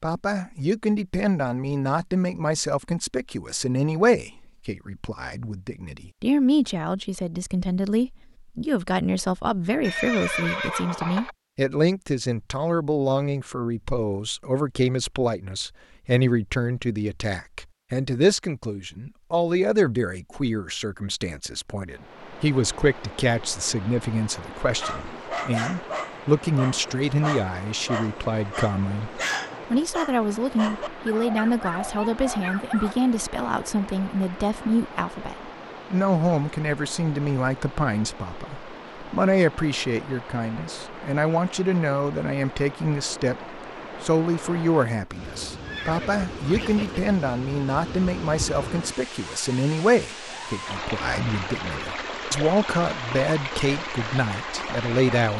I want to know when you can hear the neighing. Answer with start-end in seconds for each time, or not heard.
9.8-11.3, 45.6-47.0.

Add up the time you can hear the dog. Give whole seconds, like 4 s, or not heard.
8 s.